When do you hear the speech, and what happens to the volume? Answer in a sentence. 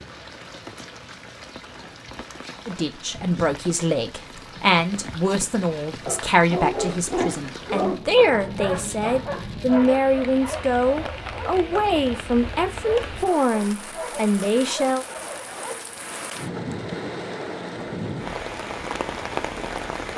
The speech can be heard from 2.6 to 15.1 s, at a steady volume.